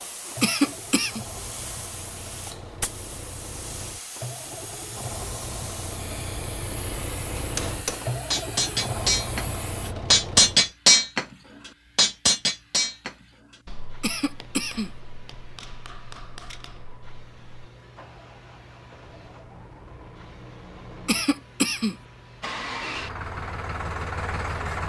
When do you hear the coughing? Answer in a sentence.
You can hear the coughing from 0.4 to 1.2 s, from 14.0 to 14.9 s and from 21.1 to 21.9 s.